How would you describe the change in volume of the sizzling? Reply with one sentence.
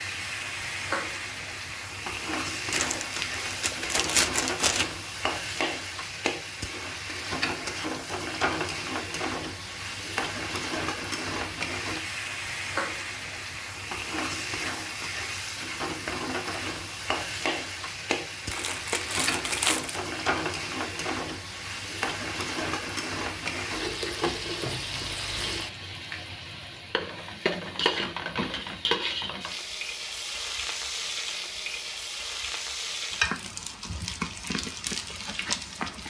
The volume of the sizzling stays about the same.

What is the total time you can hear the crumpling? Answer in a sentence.
The crumpling can be heard for 4 seconds in total.